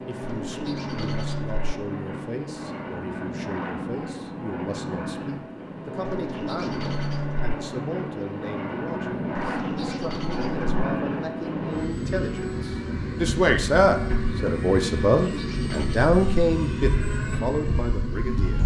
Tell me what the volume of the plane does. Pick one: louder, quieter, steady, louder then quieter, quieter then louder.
steady.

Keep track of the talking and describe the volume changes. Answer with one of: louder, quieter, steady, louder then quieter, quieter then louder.
louder.